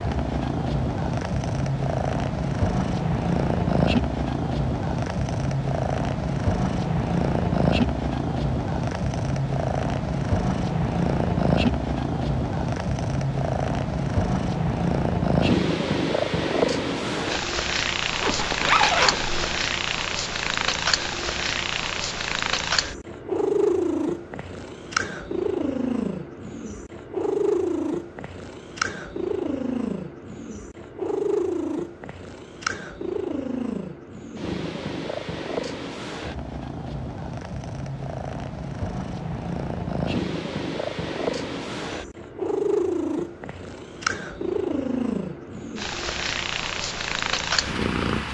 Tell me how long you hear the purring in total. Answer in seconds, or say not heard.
48 s.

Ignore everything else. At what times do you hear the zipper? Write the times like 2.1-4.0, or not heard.
18.2-19.6.